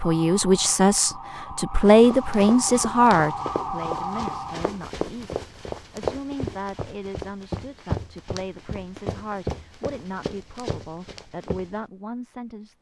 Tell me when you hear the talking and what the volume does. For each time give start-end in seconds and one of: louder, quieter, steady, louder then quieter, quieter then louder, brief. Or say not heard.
0.0-12.7 quieter.